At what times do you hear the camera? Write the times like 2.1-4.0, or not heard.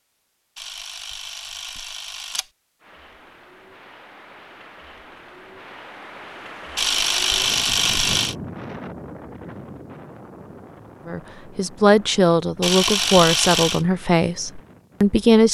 0.6-2.5, 6.8-8.3, 12.6-13.8.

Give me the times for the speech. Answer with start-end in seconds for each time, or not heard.
11.1-15.5.